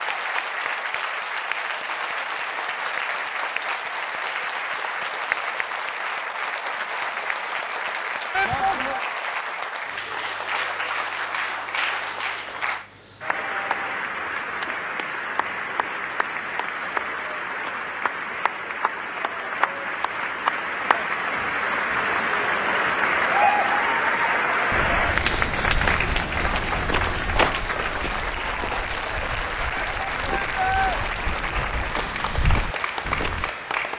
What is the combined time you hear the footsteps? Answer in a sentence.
You can hear the footsteps for 9 seconds altogether.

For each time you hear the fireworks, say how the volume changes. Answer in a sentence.
You can't hear the fireworks here.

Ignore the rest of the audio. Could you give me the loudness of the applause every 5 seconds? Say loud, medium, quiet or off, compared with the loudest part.
medium, medium, medium, medium, loud, loud, medium.